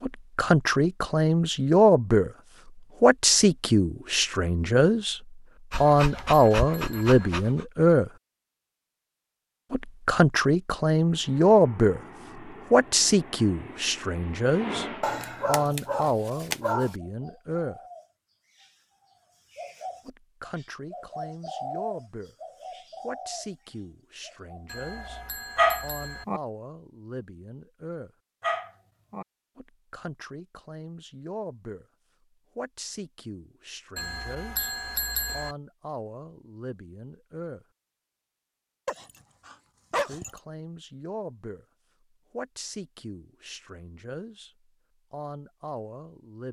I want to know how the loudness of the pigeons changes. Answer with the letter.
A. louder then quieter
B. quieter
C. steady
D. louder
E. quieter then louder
A.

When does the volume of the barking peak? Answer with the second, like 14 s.
26 s.